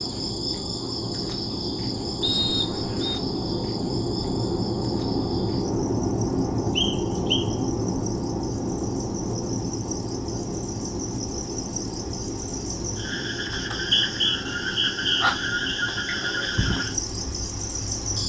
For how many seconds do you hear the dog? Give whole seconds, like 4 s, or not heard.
not heard.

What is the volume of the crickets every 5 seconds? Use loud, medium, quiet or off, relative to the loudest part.
medium, quiet, medium, loud.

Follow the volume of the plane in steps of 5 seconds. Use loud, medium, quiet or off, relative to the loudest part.
loud, loud, medium, medium.